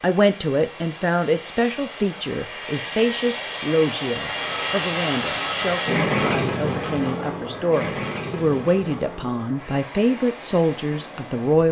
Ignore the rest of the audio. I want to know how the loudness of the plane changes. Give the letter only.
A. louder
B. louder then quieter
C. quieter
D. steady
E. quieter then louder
B.